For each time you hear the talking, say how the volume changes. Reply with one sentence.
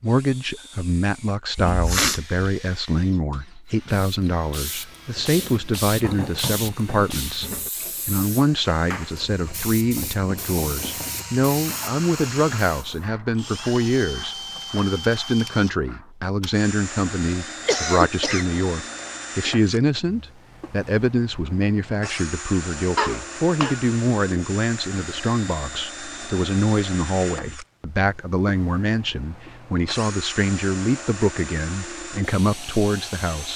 You can hear the talking from 0.0 to 33.5 s, at a steady volume.